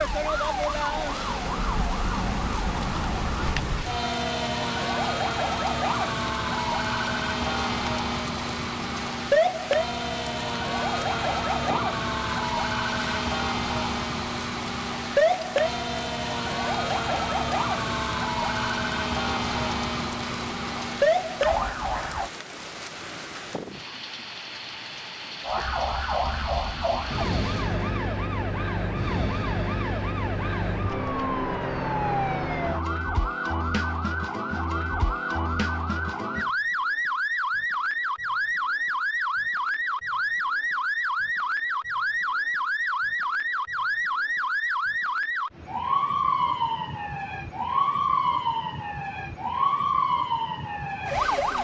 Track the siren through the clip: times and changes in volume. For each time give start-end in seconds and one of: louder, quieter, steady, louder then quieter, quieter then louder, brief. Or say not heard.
0.0-22.3 steady
25.4-51.6 steady.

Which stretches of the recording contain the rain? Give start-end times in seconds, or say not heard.
0.0-27.9.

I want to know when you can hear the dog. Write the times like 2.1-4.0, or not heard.
not heard.